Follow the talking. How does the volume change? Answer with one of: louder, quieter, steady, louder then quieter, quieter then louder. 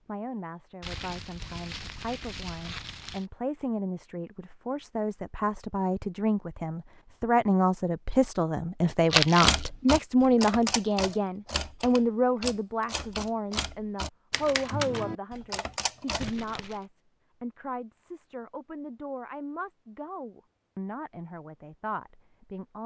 louder then quieter.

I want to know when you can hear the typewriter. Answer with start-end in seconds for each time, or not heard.
9.4-16.3.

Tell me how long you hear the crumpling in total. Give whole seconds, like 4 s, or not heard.
4 s.